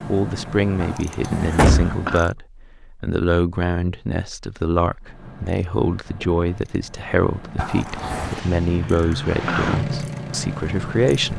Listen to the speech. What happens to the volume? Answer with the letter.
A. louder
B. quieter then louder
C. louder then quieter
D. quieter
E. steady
E.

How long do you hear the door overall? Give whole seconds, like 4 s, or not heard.
2 s.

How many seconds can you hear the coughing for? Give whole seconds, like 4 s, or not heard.
2 s.